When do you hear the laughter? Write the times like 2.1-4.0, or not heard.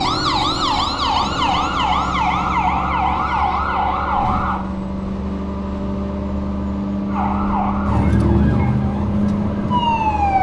not heard.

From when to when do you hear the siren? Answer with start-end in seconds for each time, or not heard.
0.0-4.6, 7.0-10.3.